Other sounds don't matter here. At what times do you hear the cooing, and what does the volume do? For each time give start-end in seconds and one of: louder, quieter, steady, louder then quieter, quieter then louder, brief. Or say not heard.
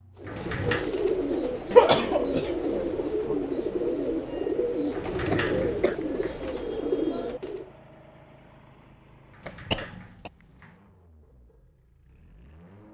0.1-7.7 steady.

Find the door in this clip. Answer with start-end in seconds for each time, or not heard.
0.2-0.9, 4.9-6.4, 9.3-10.8.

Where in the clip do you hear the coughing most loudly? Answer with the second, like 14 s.
2 s.